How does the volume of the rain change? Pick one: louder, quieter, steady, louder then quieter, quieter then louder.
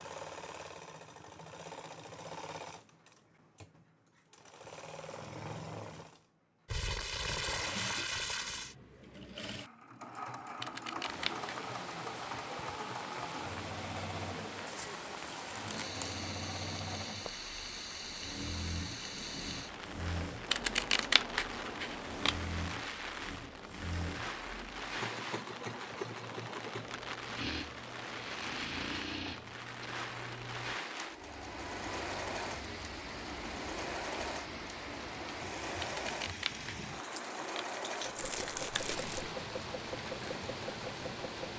steady.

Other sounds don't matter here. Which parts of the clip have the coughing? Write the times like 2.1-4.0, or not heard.
not heard.